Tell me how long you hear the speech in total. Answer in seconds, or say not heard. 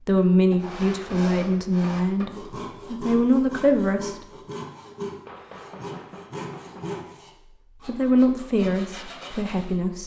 6 s.